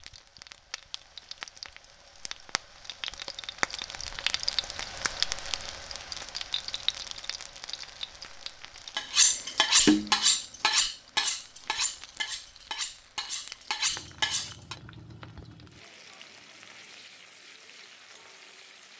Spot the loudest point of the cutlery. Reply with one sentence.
The volume of the cutlery peaks at 10 seconds.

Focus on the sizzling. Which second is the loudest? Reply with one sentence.
The loudest moment of the sizzling is at 5 seconds.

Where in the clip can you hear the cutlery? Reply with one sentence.
The cutlery can be heard from 8.9 to 14.8 s.